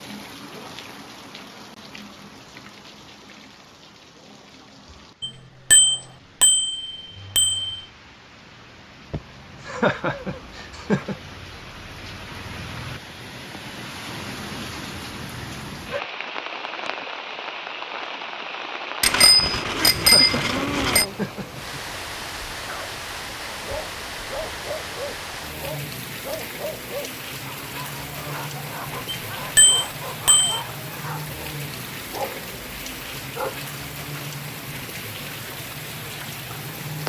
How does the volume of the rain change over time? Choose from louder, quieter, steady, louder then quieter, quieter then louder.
louder.